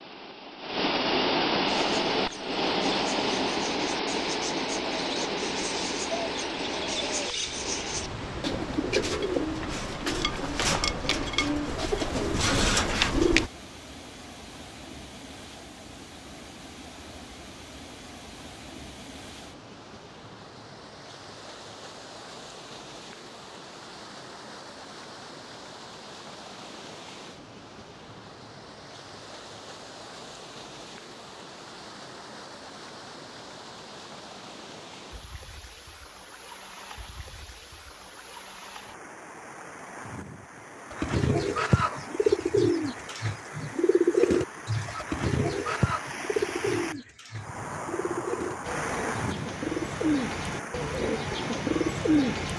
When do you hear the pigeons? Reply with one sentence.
The pigeons can be heard from 1.6 to 13.5 s and from 40.9 to 52.5 s.